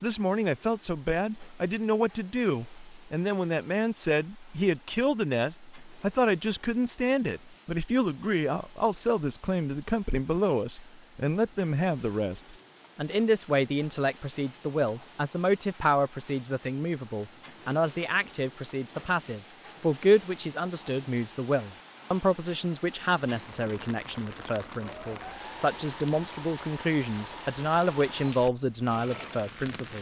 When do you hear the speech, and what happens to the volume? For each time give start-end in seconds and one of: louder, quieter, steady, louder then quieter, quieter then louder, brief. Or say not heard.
0.0-29.9 steady.